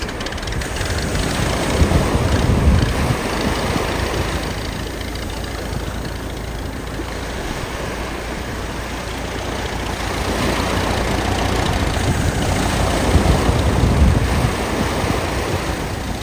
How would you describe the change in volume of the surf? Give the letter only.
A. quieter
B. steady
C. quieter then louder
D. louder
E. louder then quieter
C.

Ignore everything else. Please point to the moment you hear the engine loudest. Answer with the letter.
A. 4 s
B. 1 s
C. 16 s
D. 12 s
D.